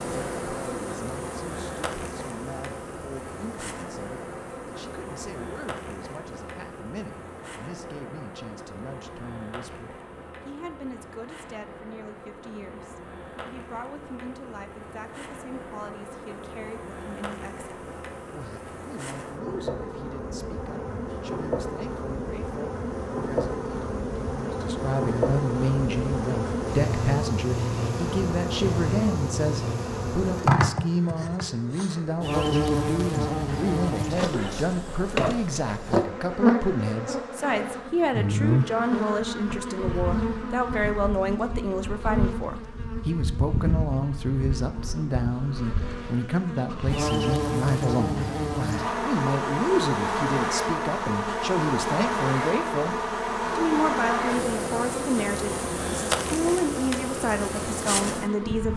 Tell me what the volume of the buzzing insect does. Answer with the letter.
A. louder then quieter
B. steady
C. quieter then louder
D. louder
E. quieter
D.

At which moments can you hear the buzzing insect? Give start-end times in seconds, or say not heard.
0.0-58.7.